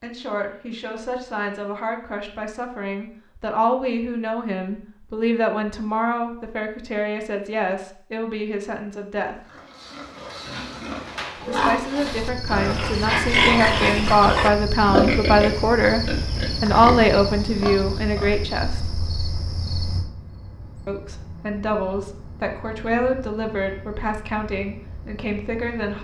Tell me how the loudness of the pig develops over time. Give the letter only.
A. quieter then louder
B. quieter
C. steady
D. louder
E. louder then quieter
E.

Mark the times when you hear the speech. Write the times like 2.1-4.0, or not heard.
0.0-9.4, 11.4-16.0, 16.6-18.9, 20.9-26.0.